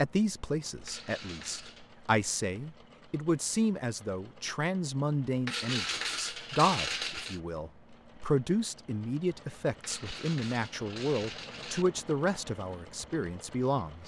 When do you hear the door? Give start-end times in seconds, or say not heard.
not heard.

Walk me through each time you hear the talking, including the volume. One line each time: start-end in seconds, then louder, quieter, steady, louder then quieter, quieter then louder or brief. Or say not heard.
0.0-14.0 steady.